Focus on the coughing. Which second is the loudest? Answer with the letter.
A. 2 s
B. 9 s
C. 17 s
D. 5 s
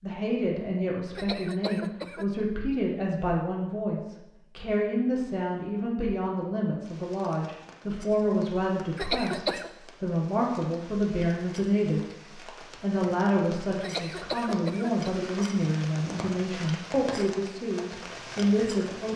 B.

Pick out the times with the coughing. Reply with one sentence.
You can hear the coughing from 1.1 to 2.2 s, from 8.9 to 9.7 s and from 13.8 to 15.2 s.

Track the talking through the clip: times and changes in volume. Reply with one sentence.
You can hear the talking from 0.0 to 12.0 s, at a steady volume; and from 12.8 to 19.1 s, at a steady volume.